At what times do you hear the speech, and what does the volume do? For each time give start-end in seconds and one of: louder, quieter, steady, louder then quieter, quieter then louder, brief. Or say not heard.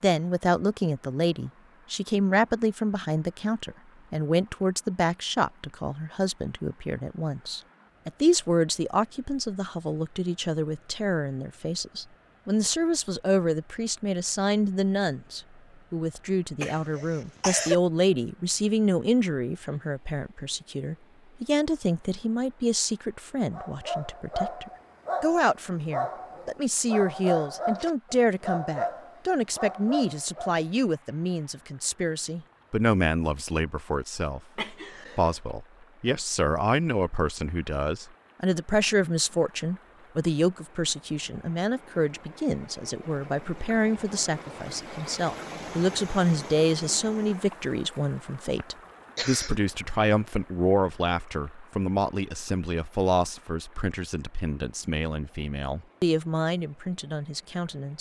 0.0-57.9 steady.